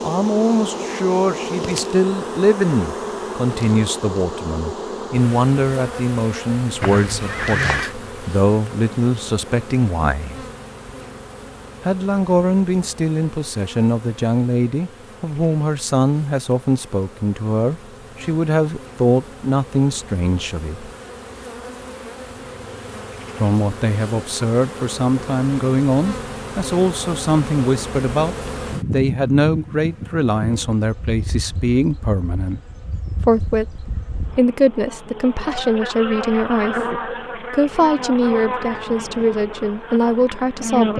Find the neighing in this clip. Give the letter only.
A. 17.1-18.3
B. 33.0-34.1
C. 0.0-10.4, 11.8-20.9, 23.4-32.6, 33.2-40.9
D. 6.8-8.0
D.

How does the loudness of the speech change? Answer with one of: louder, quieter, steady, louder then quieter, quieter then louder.
steady.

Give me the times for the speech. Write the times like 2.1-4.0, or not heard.
0.0-10.4, 11.8-20.9, 23.4-32.6, 33.2-40.9.